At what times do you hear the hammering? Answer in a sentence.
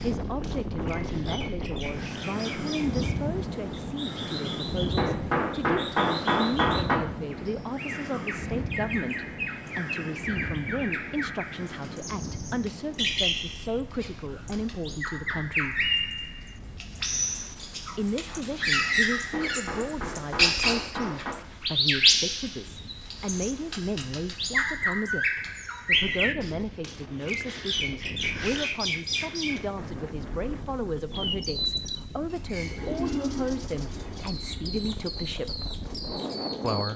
You can hear the hammering from 5.0 to 7.0 s and from 19.3 to 21.4 s.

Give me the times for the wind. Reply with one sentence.
You can hear the wind from 0.0 to 36.9 s.